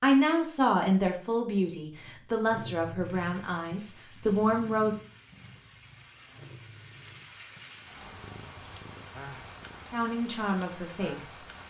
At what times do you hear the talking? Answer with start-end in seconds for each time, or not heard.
0.0-5.0, 9.9-11.3.